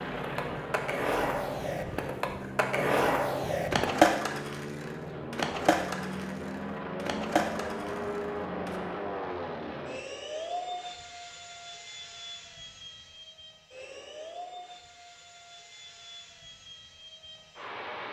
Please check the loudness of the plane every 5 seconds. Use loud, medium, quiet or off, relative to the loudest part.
loud, loud, medium, medium.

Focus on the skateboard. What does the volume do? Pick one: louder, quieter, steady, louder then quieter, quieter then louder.
louder then quieter.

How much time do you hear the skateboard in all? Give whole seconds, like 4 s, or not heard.
9 s.